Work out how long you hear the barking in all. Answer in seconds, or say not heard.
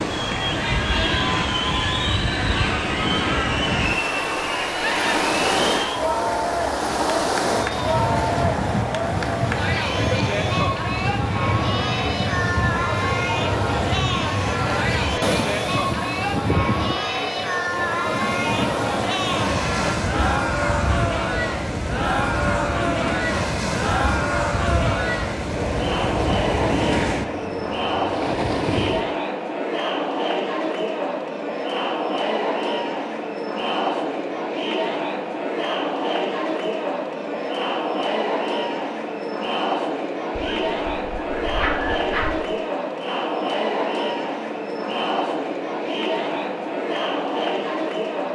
2 s.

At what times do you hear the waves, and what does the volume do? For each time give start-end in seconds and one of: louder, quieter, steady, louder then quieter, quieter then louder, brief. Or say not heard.
0.0-29.1 steady.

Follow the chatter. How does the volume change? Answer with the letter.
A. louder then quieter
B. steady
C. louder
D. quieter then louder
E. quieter
B.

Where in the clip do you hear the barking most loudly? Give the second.
42 s.